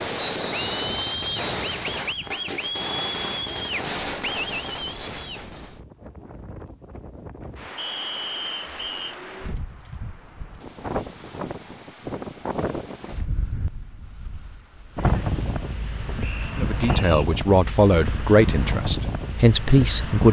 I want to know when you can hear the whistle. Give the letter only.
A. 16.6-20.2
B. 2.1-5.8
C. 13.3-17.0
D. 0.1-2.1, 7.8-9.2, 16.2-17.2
D.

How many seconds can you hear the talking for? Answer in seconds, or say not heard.
4 s.